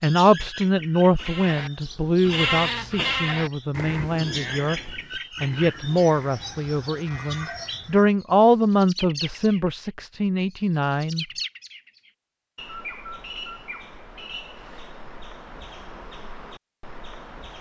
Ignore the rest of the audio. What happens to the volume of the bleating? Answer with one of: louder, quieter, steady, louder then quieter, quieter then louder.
quieter.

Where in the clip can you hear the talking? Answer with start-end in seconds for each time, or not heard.
0.0-11.2.